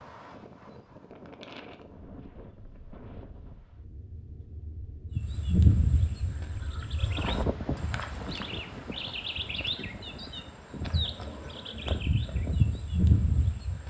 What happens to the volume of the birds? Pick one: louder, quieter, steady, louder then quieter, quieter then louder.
quieter then louder.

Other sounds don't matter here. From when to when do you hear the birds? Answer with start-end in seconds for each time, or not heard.
5.1-13.8.